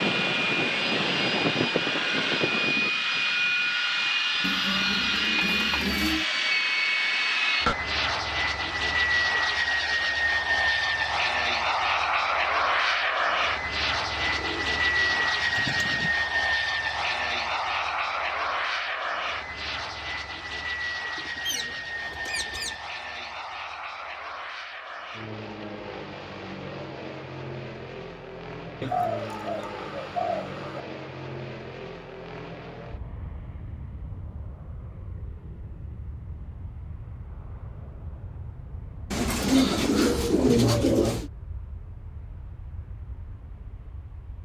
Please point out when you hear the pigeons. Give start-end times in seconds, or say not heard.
4.4-6.2, 14.2-16.2, 21.1-22.8, 28.8-30.8, 39.1-41.3.